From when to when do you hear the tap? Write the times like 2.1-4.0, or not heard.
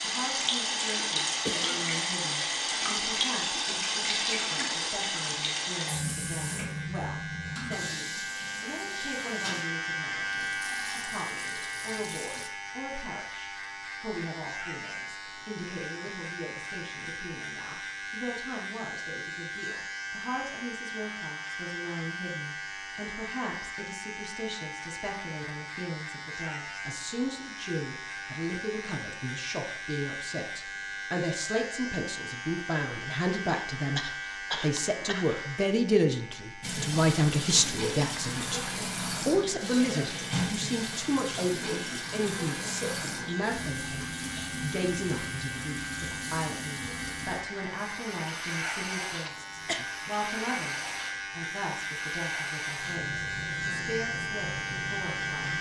0.0-12.5, 36.6-55.5.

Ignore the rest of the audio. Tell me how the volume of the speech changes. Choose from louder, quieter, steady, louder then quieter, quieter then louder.
louder then quieter.